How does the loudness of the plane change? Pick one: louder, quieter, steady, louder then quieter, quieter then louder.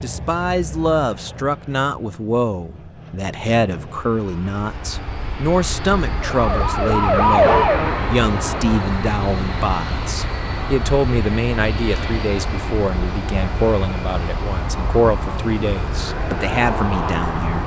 louder.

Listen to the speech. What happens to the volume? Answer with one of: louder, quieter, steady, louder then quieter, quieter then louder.
steady.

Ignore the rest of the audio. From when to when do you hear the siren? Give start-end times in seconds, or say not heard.
6.2-9.0.